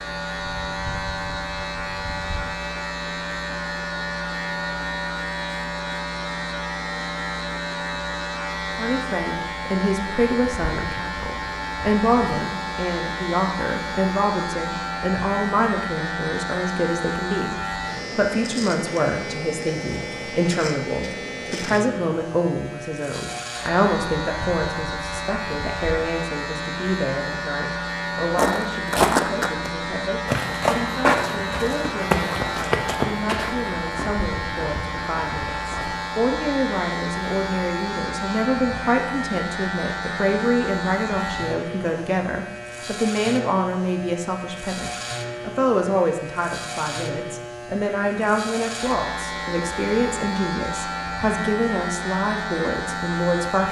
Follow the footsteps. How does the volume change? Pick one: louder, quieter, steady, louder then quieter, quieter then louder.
quieter.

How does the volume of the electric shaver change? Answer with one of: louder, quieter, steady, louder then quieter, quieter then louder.
steady.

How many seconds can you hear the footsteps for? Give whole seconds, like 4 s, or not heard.
8 s.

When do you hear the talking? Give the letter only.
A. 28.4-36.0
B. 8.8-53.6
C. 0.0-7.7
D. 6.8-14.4
B.